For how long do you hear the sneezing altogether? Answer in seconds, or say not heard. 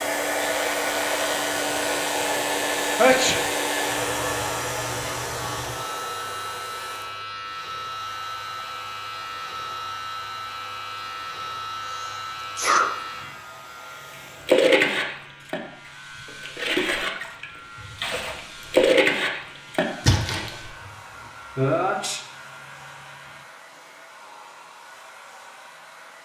3 s.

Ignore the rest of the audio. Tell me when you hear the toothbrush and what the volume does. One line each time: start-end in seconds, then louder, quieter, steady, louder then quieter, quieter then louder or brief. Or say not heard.
not heard.